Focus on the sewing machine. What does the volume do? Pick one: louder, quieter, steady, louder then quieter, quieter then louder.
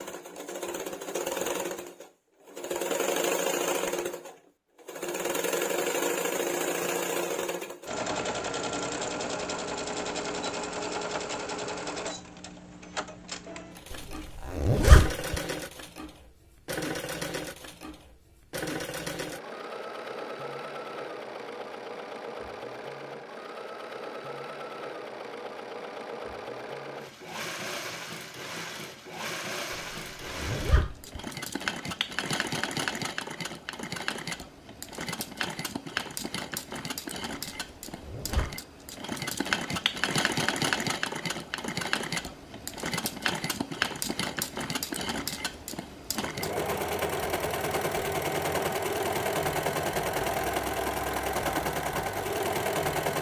quieter then louder.